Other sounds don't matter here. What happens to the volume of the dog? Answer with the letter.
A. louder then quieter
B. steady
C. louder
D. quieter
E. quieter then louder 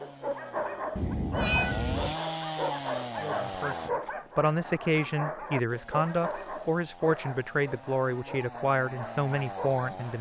D.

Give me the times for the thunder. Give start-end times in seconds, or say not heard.
not heard.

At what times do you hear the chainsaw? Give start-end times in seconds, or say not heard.
0.0-3.9, 5.7-10.1.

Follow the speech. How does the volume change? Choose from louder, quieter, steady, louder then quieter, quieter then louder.
steady.